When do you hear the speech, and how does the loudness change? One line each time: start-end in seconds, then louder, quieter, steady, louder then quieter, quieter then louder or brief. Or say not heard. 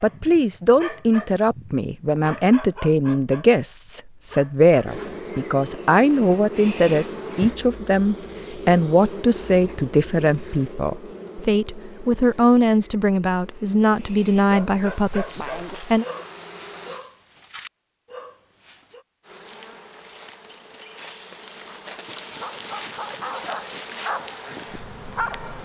0.0-16.1 steady.